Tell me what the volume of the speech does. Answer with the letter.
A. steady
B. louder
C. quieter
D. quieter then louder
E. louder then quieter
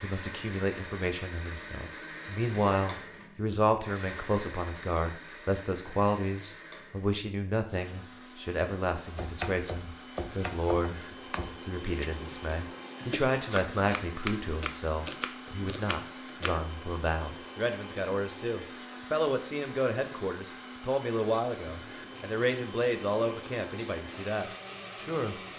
A.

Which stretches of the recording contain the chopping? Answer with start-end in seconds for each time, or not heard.
9.1-16.6.